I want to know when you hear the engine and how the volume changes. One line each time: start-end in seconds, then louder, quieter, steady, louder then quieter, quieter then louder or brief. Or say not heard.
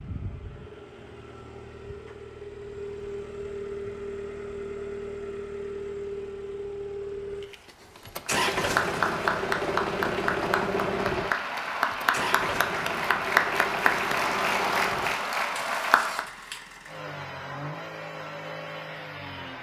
0.0-19.5 louder then quieter.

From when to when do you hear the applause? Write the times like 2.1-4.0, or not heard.
8.2-16.2.